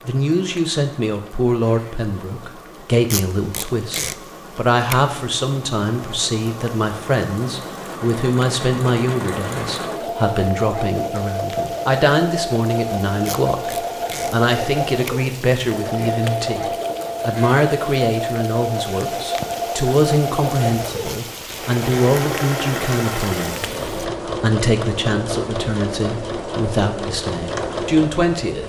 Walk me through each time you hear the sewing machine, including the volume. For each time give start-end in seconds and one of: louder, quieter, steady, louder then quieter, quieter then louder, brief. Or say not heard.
0.0-28.6 louder.